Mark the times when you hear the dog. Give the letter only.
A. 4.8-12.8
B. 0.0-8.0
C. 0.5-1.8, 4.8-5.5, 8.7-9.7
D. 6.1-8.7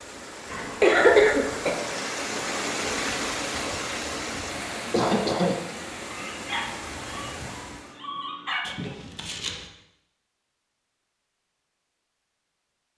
D.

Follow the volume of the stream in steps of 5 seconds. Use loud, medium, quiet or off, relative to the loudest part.
loud, medium, off.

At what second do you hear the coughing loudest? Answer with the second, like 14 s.
1 s.